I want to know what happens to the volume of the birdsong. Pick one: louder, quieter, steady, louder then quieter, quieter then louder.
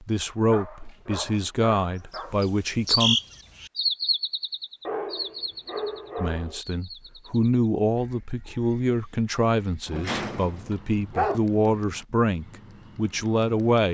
quieter then louder.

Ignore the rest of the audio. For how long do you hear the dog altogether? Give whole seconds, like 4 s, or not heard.
5 s.